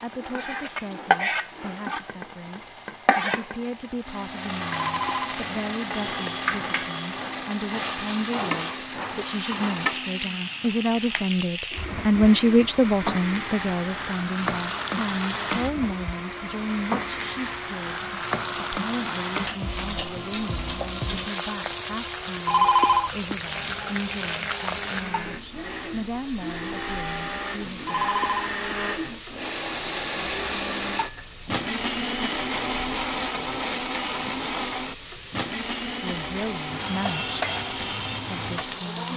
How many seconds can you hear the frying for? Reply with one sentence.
The frying can be heard for 39 seconds in total.